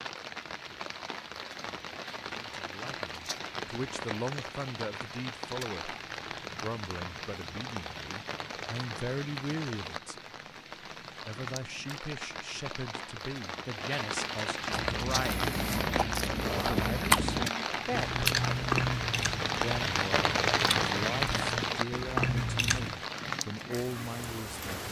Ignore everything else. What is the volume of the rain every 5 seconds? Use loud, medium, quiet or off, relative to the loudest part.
medium, medium, medium, loud, loud.